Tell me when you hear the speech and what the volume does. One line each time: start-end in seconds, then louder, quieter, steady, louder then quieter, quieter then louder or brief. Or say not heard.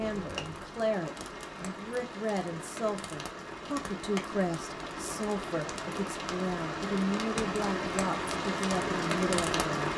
0.0-9.9 steady.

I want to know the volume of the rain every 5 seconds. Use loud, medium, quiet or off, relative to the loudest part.
medium, loud.